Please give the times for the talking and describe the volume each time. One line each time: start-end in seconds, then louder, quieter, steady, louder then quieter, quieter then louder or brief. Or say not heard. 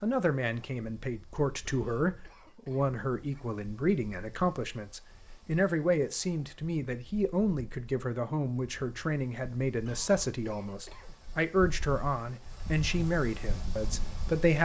0.0-14.5 steady.